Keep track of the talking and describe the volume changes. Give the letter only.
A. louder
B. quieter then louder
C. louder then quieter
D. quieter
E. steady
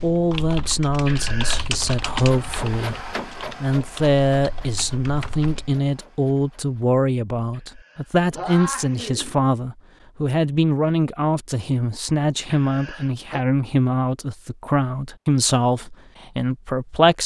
E.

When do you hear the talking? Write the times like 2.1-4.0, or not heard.
0.0-17.2.